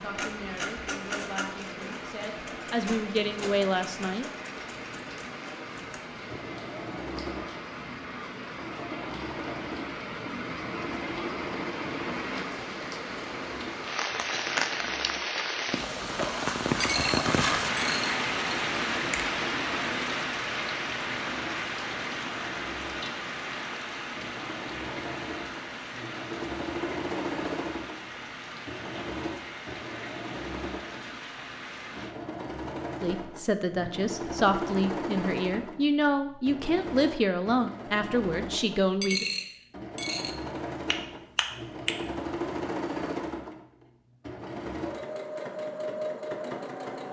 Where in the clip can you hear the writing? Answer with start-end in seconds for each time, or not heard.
not heard.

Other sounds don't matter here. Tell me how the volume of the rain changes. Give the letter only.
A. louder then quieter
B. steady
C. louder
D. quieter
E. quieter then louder
A.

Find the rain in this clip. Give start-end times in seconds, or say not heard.
0.0-32.1.